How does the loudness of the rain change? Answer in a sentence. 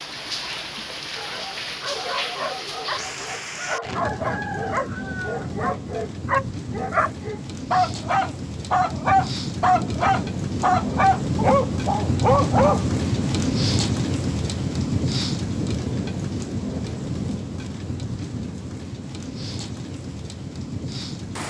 The loudness of the rain goes up, then down.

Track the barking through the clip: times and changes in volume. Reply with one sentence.
The barking can be heard from 1.1 to 13.0 s, getting louder.